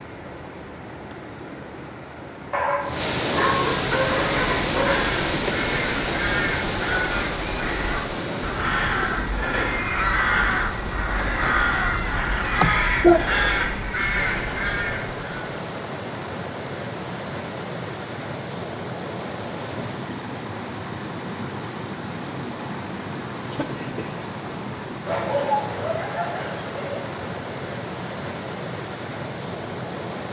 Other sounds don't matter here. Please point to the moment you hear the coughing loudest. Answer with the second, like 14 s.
13 s.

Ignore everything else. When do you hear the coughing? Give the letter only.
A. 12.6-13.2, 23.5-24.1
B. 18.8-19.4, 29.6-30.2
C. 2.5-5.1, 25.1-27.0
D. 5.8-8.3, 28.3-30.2
A.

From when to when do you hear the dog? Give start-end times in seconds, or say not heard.
2.5-5.1, 25.1-27.0.